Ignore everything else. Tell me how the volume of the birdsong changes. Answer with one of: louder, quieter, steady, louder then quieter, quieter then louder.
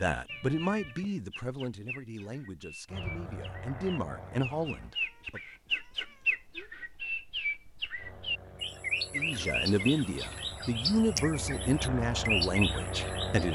louder.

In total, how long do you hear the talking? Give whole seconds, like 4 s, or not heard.
10 s.